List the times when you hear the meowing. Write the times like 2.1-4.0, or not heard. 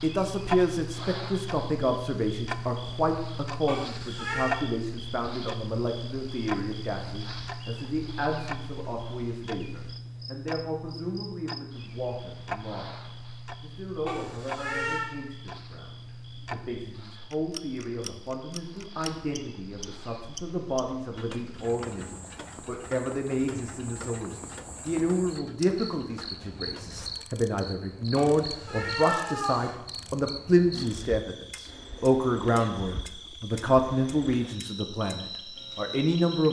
3.6-4.6, 14.1-15.1, 28.1-29.7.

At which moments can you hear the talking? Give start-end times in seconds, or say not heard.
0.0-36.4.